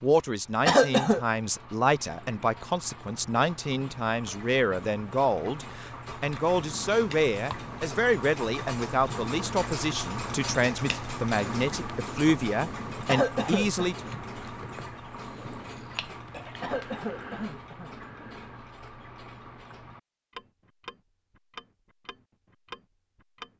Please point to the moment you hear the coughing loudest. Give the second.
1 s.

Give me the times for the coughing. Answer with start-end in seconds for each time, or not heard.
0.7-1.2, 13.1-13.8, 16.6-17.9.